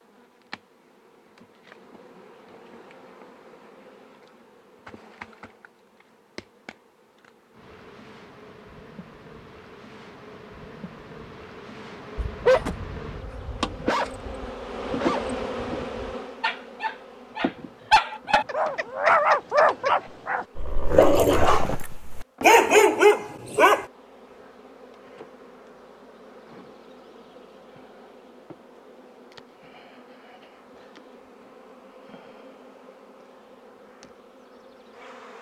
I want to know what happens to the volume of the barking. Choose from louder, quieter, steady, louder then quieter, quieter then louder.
louder.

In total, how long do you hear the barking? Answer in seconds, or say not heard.
12 s.